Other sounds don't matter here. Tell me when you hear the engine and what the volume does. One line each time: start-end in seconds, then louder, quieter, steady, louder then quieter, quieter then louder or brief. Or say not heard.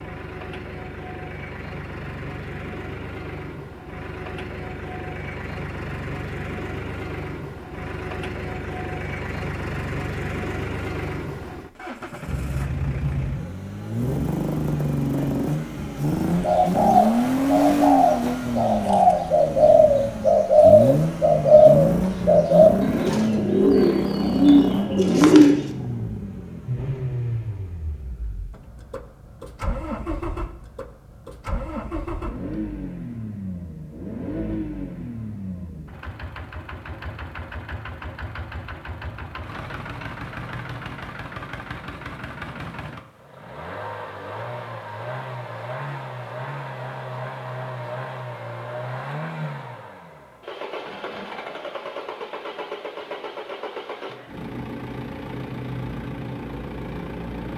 0.0-57.5 louder then quieter.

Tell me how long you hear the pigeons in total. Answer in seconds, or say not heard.
9 s.